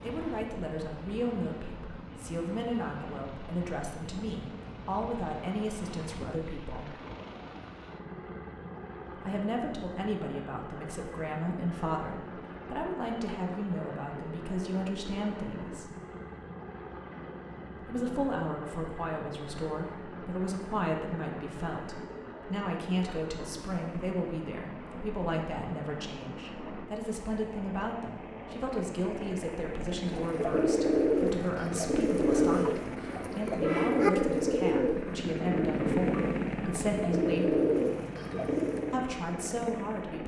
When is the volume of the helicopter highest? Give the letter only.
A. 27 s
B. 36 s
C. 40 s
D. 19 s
B.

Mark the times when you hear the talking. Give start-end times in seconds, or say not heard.
0.0-6.9, 9.2-15.9, 17.8-37.5, 38.9-40.2.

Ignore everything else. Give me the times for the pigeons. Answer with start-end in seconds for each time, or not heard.
30.1-39.0.